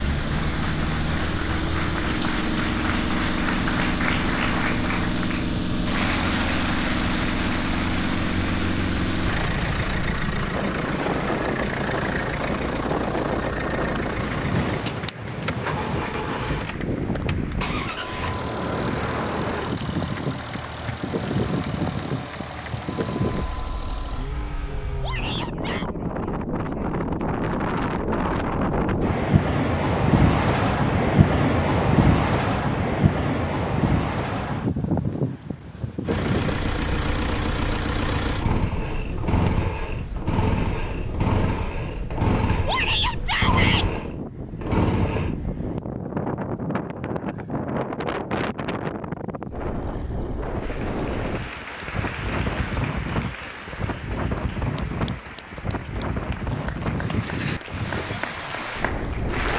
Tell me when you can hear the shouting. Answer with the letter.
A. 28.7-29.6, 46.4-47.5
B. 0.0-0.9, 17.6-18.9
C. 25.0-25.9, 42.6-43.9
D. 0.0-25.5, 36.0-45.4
C.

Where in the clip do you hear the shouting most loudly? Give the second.
43 s.